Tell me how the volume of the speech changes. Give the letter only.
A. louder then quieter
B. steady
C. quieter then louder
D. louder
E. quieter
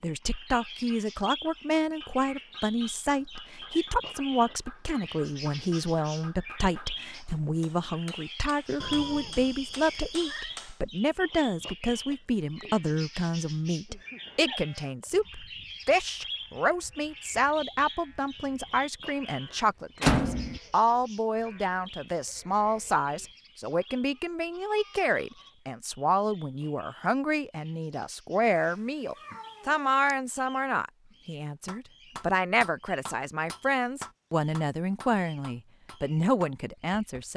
B.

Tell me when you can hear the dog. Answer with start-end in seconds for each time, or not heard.
not heard.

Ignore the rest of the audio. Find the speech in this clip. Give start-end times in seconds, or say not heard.
0.0-37.3.